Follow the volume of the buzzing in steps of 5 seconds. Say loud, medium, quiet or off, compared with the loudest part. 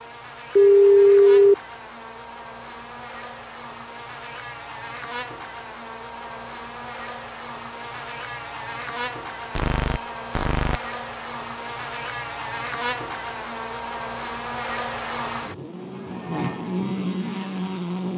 medium, medium, loud, loud.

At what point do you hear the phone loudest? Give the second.
1 s.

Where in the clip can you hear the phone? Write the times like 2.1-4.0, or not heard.
0.6-1.6, 9.6-10.8.